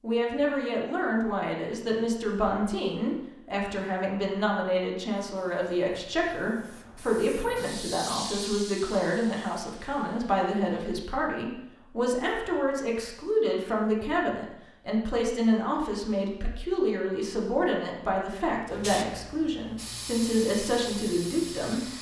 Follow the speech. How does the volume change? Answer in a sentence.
The volume of the speech stays about the same.